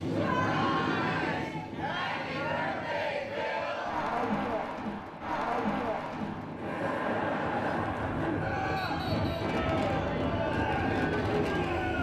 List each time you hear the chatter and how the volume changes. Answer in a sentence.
You can hear the chatter from 0.0 to 11.9 s, at a steady volume.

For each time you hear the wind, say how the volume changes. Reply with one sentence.
You can hear the wind from 0.0 to 11.9 s, getting quieter then louder.